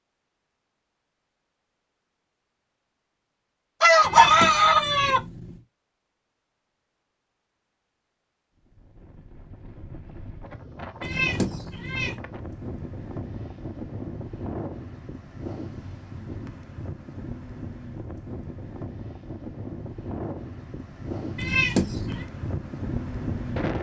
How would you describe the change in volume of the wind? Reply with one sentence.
The loudness of the wind goes up.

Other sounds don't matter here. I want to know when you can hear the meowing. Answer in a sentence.
You can hear the meowing from 4.0 to 5.6 s, from 11.0 to 12.2 s and from 21.4 to 22.2 s.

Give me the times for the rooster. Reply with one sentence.
The rooster can be heard from 3.8 to 5.2 s.